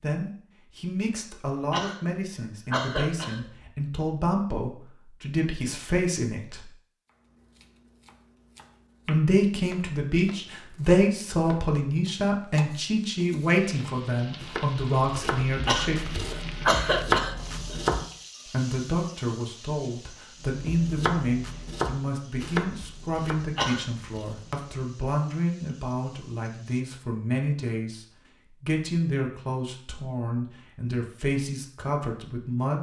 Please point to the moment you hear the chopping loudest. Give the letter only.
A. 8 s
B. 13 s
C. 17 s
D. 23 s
C.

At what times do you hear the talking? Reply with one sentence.
The talking can be heard from 0.0 to 6.7 s, from 9.1 to 16.1 s and from 18.4 to 32.7 s.